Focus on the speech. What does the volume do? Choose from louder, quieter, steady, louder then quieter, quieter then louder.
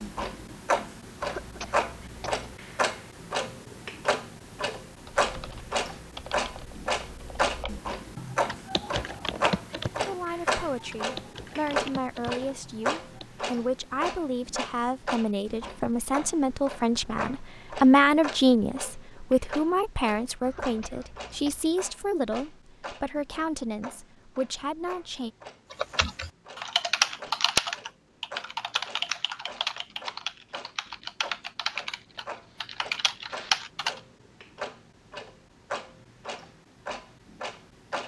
louder then quieter.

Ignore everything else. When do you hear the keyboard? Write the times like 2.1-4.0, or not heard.
5.0-13.2, 25.7-34.0.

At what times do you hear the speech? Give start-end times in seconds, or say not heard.
10.1-25.3.